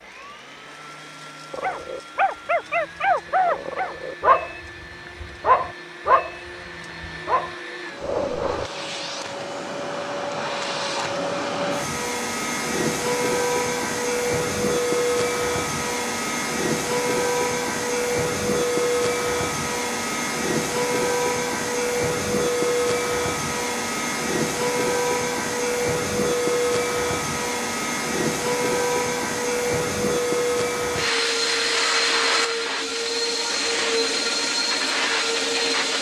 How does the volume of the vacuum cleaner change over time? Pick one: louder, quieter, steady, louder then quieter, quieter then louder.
louder.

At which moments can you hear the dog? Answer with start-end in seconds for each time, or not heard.
1.5-8.7.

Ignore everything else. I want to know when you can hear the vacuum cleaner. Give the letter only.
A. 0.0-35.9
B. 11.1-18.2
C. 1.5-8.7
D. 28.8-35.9
A.